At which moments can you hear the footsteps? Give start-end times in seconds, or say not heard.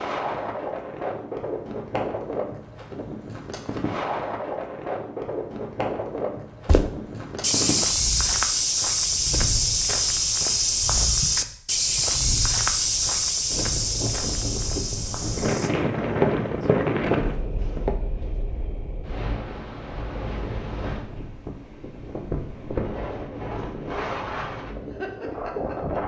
6.7-17.9.